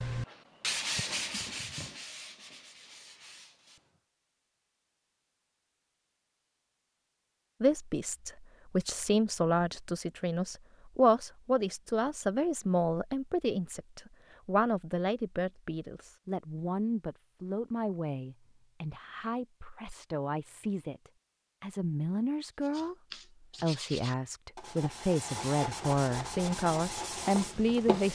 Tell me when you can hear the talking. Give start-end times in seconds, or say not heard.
7.6-28.1.